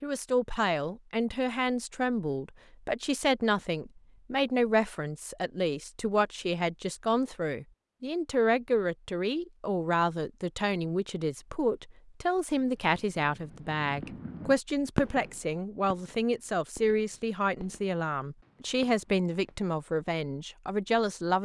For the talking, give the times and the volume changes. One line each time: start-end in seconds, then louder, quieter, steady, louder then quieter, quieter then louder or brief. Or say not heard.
0.0-21.4 steady.